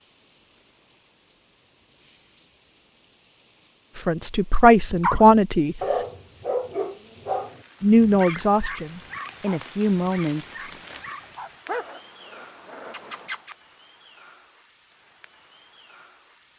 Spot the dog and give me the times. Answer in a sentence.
You can hear the dog from 4.9 to 13.6 s.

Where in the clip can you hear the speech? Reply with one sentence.
You can hear the speech from 4.0 to 5.8 s and from 7.8 to 10.6 s.